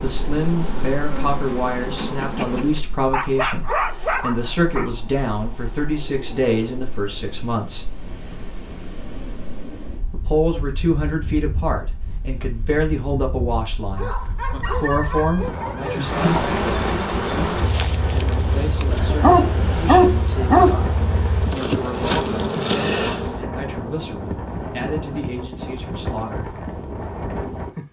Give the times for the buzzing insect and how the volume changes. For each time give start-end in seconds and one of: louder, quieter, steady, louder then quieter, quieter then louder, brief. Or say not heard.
0.0-2.9 brief
15.9-23.4 quieter then louder.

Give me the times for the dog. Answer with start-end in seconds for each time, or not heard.
3.1-4.9, 13.9-16.2, 18.9-20.8.